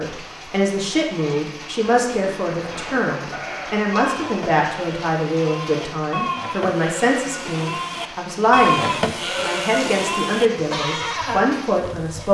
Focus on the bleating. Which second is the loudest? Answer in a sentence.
The loudest moment of the bleating is at 9 seconds.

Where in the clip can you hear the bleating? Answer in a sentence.
The bleating can be heard from 1.1 to 12.3 s.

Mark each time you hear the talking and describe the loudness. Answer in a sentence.
You can hear the talking from 0.0 to 12.3 s, at a steady volume.